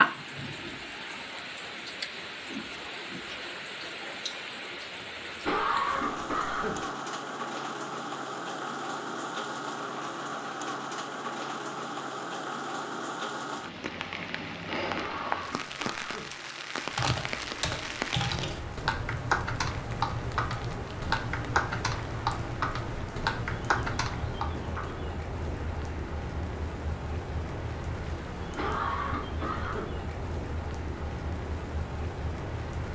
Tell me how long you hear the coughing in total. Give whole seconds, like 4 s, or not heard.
4 s.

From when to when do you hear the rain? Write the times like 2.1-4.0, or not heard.
0.0-32.9.